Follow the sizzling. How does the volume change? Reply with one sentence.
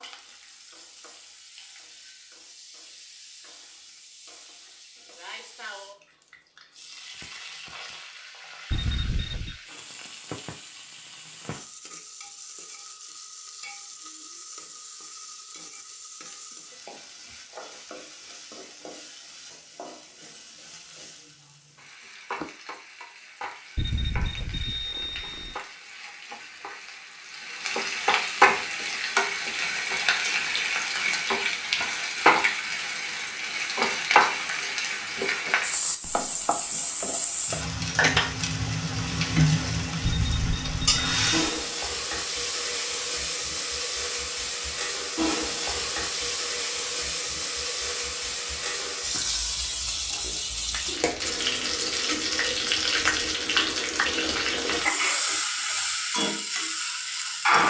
The loudness of the sizzling goes up.